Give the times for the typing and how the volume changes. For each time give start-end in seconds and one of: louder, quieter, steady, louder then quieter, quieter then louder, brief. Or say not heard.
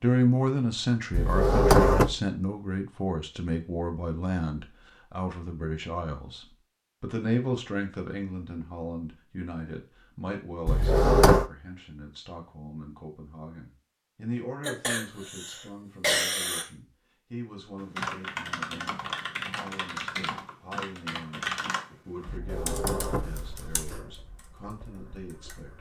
17.8-25.7 quieter.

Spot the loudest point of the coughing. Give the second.
16 s.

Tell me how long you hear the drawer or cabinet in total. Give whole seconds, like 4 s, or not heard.
3 s.